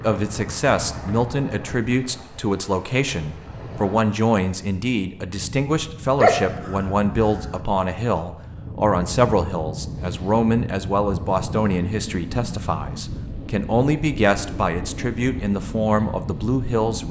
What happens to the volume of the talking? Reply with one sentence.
The volume of the talking stays about the same.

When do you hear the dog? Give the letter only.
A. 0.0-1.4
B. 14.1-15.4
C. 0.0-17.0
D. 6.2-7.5
D.